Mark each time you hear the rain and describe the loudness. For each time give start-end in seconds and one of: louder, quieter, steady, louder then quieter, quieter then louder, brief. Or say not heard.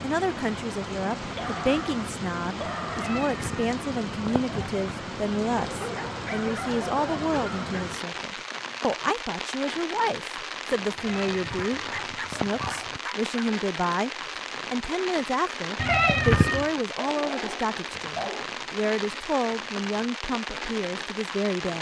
0.0-21.7 steady.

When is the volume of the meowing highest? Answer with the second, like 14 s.
16 s.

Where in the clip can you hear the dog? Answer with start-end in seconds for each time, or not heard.
1.2-3.2, 5.5-7.9, 11.5-13.3, 16.9-18.4.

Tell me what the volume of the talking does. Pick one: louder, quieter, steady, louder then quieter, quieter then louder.
steady.